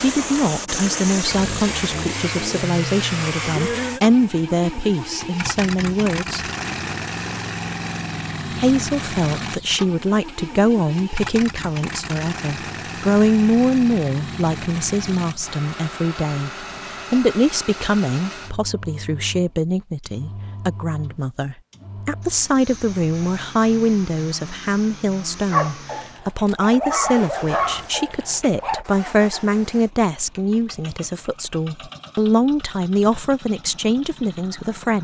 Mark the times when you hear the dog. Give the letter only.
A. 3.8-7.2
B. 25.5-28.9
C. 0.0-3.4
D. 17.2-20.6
B.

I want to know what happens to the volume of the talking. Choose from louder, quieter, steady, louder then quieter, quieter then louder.
steady.